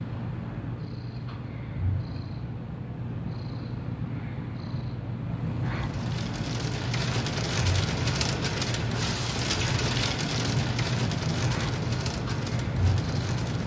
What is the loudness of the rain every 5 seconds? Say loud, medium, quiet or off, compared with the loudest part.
off, loud, loud.